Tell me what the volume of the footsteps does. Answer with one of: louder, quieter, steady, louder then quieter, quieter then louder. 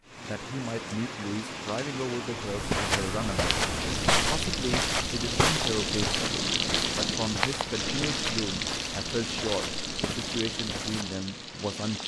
quieter.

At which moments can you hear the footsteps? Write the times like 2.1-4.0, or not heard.
2.5-11.2.